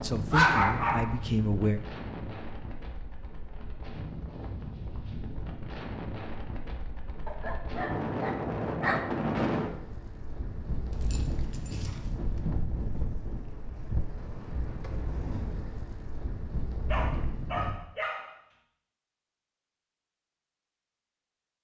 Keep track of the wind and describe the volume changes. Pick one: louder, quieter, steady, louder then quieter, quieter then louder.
louder then quieter.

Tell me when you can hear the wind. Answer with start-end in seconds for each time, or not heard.
0.0-17.8.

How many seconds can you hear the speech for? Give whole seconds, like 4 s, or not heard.
2 s.